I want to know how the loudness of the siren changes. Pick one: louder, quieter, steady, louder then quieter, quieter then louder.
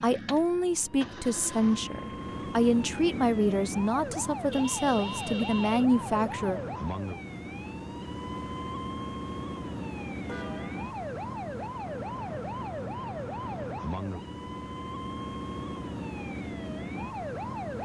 steady.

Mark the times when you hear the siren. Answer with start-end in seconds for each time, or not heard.
0.2-17.8.